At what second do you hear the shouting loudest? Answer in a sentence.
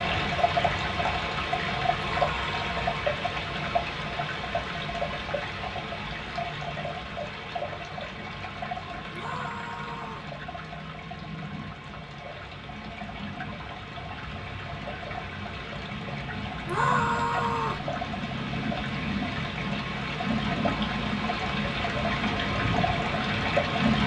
The loudest moment of the shouting is at 17 seconds.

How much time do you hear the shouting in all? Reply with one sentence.
You can hear the shouting for 3 seconds altogether.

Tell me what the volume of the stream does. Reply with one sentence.
The volume of the stream goes down, then up.